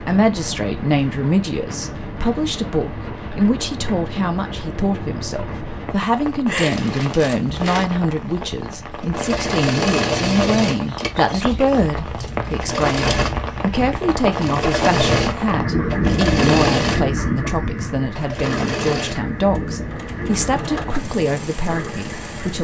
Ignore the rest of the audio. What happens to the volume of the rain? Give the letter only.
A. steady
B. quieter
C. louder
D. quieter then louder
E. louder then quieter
E.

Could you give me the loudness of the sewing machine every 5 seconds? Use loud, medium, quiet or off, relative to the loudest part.
off, loud, loud, loud, medium.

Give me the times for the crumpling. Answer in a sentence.
You can hear the crumpling from 6.5 to 7.4 s.